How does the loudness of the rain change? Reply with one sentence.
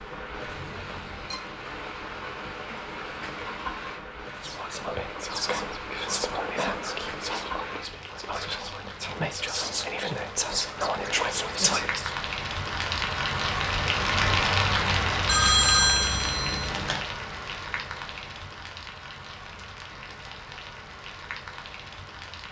The loudness of the rain goes up, then down.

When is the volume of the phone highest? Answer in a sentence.
The loudest moment of the phone is at 16 seconds.